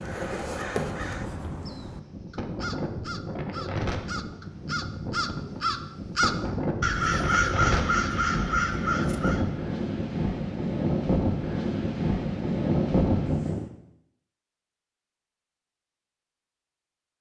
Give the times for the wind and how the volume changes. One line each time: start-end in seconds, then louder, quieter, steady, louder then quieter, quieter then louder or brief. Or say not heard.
0.0-13.7 louder.